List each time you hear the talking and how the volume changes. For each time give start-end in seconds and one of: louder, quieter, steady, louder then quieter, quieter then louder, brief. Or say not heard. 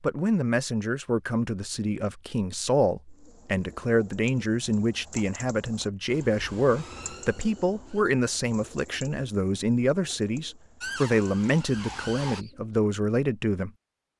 0.0-13.7 steady.